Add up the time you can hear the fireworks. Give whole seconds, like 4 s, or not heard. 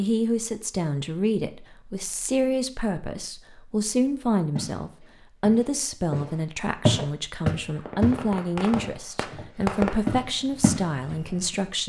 4 s.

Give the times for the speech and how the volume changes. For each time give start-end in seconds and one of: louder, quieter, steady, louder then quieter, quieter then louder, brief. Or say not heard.
0.0-11.8 steady.